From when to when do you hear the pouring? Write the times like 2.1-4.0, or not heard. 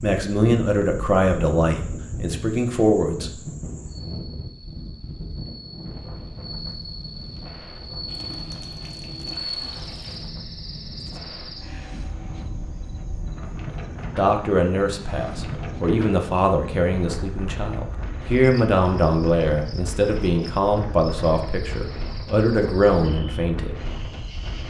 8.1-10.3.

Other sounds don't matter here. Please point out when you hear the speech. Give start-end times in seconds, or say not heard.
0.0-3.4, 14.2-23.8.